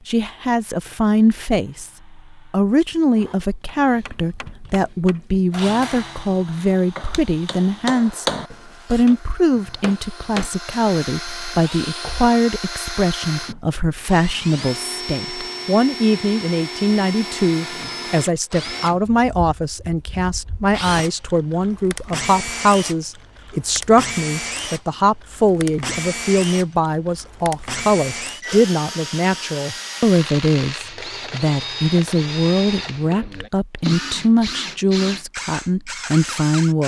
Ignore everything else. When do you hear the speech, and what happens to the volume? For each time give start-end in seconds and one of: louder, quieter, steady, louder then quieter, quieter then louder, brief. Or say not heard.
0.1-36.8 steady.